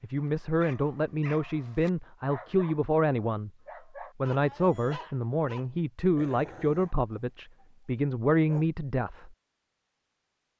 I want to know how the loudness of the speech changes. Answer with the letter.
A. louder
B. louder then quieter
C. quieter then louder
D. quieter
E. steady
E.